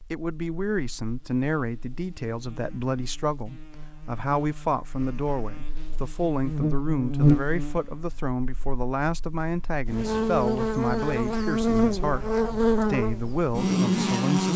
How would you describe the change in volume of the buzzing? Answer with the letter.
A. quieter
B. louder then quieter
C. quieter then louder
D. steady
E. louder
E.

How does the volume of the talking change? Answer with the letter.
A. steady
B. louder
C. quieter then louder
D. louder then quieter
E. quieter
A.